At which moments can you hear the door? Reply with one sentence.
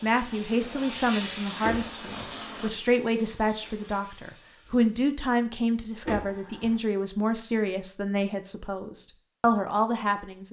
You can hear the door from 1.6 to 2.4 s and from 6.0 to 6.8 s.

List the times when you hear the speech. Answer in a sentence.
The speech can be heard from 0.0 to 10.4 s.